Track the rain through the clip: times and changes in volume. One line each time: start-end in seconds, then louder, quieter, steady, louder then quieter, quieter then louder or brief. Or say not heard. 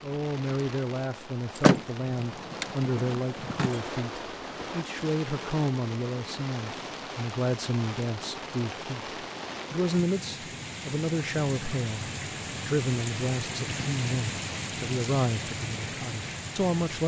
0.0-17.0 louder.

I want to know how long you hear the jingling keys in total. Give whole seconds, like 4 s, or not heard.
2 s.